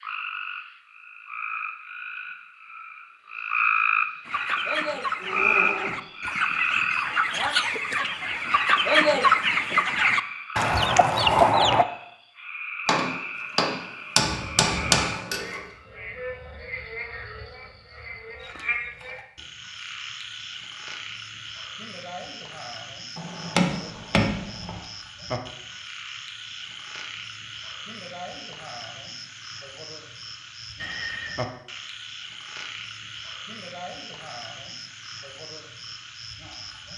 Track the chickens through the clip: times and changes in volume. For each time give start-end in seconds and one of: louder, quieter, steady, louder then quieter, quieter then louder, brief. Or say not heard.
4.2-11.8 louder.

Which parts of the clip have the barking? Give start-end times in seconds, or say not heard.
not heard.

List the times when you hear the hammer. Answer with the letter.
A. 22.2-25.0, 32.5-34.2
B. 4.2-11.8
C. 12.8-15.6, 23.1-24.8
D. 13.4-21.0
C.